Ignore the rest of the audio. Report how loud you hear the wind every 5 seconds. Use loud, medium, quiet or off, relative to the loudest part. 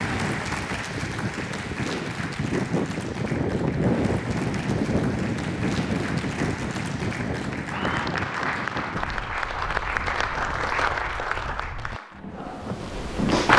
loud, loud, quiet.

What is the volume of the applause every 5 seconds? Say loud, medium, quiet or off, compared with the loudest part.
medium, medium, loud.